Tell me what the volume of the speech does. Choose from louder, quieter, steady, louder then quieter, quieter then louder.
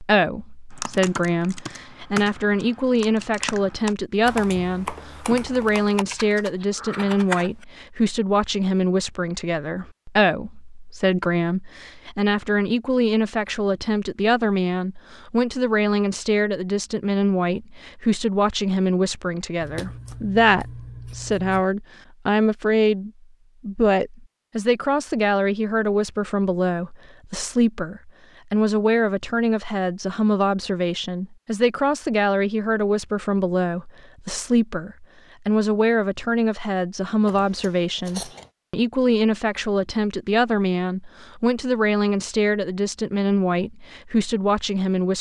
steady.